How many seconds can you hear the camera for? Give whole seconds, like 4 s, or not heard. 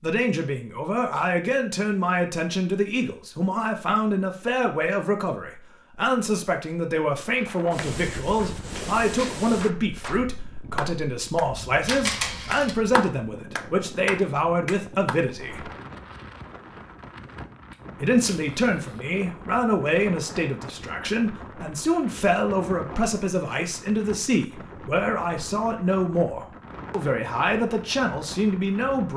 2 s.